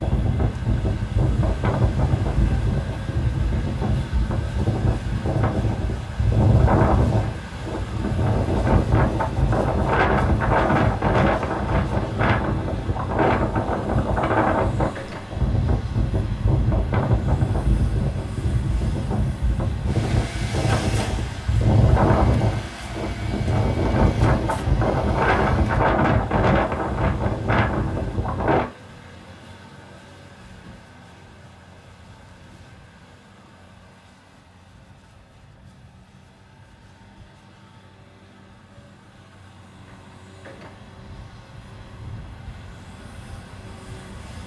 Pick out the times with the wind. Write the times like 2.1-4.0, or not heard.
0.0-28.6.